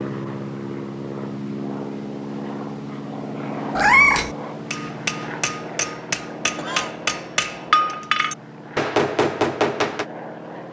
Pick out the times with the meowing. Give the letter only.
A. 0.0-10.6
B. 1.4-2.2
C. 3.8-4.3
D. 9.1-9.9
C.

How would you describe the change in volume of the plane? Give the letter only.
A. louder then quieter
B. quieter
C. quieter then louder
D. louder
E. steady
B.